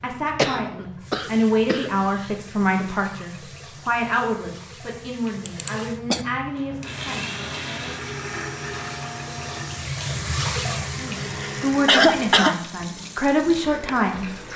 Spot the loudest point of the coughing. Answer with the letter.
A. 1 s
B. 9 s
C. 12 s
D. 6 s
C.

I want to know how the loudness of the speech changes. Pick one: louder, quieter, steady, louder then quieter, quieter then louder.
quieter then louder.